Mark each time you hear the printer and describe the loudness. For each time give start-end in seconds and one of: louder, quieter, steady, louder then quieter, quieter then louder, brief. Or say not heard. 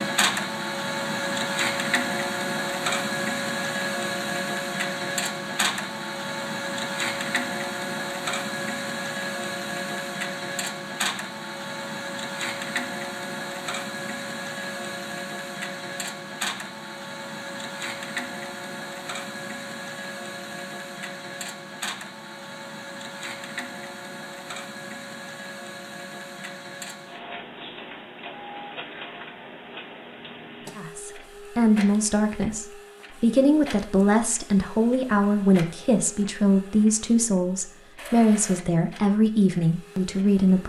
0.0-40.6 quieter.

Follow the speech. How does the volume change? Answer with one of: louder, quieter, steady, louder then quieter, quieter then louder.
steady.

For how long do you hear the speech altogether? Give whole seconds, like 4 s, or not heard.
10 s.